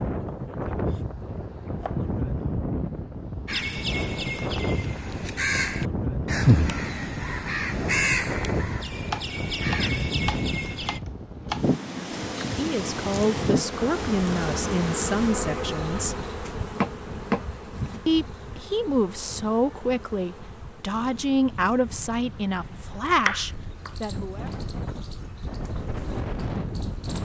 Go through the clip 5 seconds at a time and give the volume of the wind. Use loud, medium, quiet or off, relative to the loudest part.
loud, loud, loud, medium, medium, loud.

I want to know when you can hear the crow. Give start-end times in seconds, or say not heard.
3.5-11.0.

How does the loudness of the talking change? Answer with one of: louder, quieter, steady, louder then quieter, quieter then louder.
steady.